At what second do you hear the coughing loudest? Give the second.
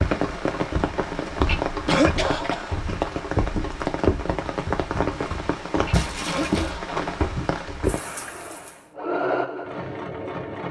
2 s.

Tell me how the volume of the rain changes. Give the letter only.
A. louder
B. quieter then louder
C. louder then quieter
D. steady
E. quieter
D.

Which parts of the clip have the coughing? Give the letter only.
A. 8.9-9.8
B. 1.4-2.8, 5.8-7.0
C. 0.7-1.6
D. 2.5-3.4
B.